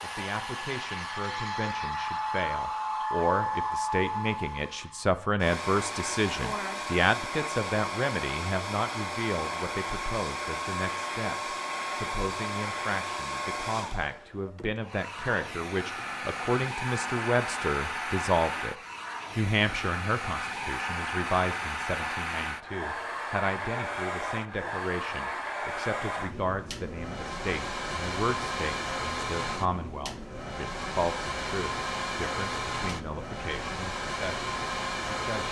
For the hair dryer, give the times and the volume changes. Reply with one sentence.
You can hear the hair dryer from 0.0 to 35.4 s, at a steady volume.